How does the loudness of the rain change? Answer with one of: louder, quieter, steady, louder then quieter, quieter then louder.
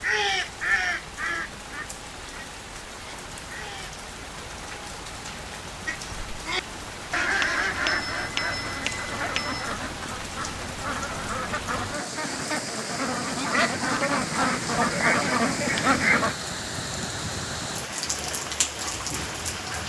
louder.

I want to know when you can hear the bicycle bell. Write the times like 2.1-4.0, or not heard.
7.4-9.8.